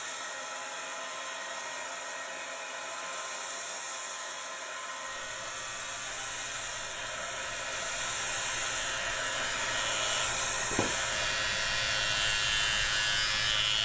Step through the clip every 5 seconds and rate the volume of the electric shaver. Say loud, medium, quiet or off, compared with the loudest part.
quiet, medium, loud.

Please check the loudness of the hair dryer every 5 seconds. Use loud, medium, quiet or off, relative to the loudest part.
medium, loud, loud.